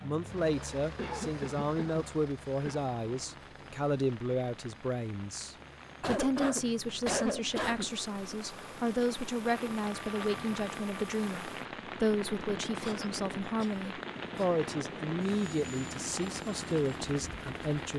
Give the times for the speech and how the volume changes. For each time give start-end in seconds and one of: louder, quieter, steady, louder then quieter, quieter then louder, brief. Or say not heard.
0.0-17.9 steady.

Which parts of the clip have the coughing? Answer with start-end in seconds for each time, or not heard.
0.9-2.9, 6.0-7.9, 12.8-14.7.